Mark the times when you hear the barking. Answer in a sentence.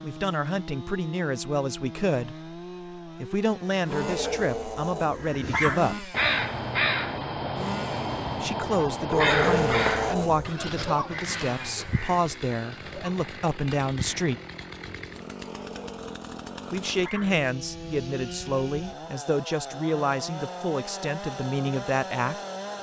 The barking can be heard from 3.9 to 6.0 s, from 9.1 to 10.6 s and from 15.4 to 17.4 s.